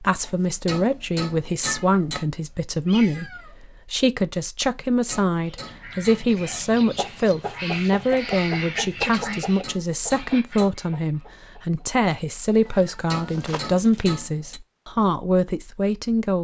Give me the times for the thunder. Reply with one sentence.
You can't hear the thunder here.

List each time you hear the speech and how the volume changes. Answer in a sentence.
The speech can be heard from 0.0 to 16.3 s, at a steady volume.